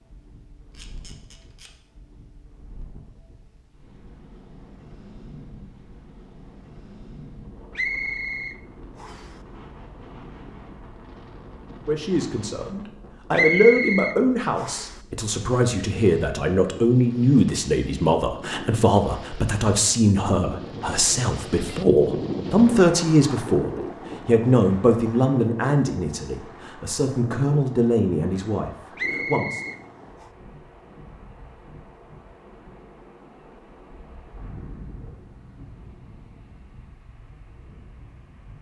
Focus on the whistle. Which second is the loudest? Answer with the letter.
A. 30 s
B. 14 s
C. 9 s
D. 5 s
B.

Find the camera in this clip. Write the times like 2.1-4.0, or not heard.
0.7-1.7.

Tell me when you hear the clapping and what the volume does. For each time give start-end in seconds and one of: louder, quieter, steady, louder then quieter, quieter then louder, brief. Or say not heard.
not heard.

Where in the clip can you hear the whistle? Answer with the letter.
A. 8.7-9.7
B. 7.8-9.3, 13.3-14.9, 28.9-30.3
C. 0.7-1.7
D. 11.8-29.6
B.